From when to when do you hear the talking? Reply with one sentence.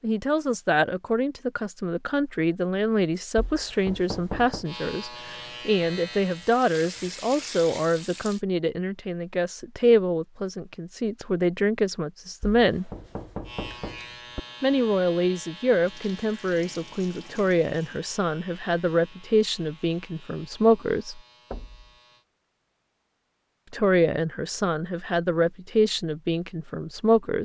You can hear the talking from 0.0 to 12.9 s, from 14.6 to 21.2 s and from 23.7 to 27.3 s.